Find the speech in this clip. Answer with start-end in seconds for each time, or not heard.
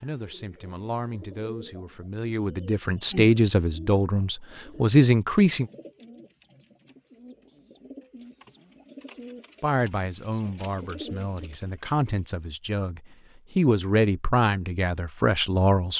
0.0-5.7, 9.6-15.9.